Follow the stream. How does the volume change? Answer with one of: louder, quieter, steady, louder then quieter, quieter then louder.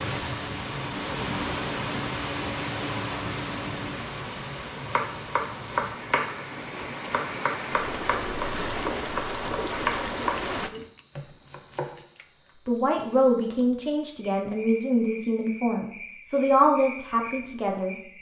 quieter then louder.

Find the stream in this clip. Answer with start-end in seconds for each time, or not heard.
0.0-10.7.